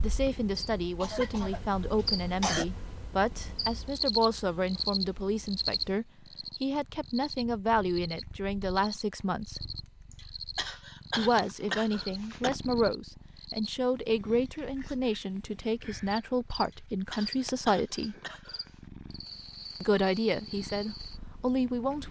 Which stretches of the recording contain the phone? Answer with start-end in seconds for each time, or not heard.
not heard.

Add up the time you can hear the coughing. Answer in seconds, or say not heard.
6 s.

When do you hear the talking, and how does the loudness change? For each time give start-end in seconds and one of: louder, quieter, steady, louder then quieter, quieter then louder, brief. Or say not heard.
0.0-9.6 steady
11.2-18.1 steady
19.8-22.0 brief.